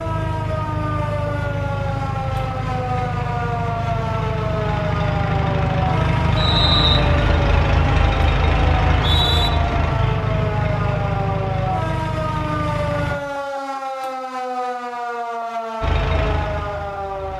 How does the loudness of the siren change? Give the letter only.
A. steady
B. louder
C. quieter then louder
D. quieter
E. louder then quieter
A.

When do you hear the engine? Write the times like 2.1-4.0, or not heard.
0.0-13.2, 15.8-17.3.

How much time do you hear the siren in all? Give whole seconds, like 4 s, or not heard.
17 s.